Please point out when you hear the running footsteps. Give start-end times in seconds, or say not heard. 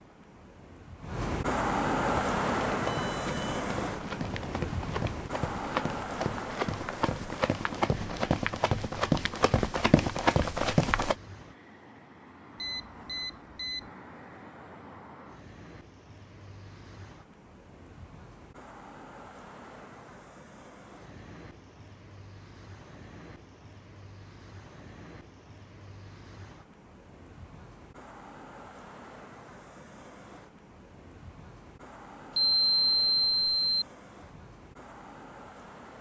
2.0-11.2.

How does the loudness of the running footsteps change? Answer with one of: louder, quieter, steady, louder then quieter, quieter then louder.
louder.